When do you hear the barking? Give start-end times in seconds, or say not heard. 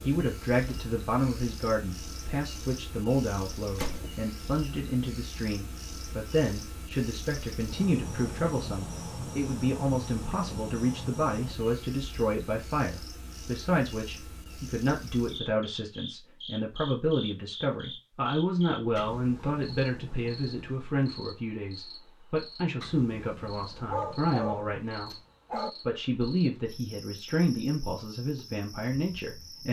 23.9-25.7.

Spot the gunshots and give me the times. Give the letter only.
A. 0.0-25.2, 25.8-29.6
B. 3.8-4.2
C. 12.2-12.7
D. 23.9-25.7
B.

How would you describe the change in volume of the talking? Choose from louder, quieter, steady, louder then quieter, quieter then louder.
steady.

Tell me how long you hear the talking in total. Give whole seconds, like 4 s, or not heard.
29 s.